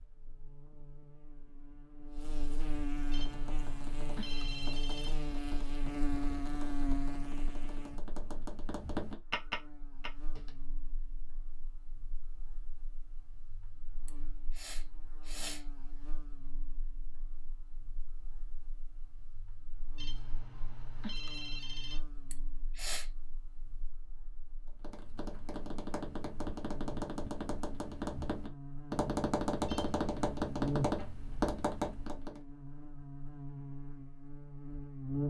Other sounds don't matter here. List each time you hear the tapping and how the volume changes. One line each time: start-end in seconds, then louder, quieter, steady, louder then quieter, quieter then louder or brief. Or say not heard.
3.0-10.6 louder
24.6-32.4 louder.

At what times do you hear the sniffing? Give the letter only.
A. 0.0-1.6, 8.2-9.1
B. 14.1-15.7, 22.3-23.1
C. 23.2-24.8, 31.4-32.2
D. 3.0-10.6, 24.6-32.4
B.